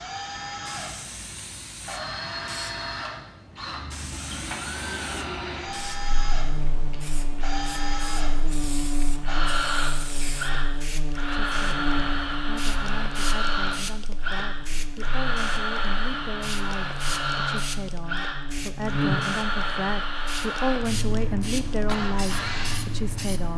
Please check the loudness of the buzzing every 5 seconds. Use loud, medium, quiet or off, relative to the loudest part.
off, loud, loud, loud, medium.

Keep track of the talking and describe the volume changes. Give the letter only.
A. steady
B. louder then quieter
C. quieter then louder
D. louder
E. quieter
D.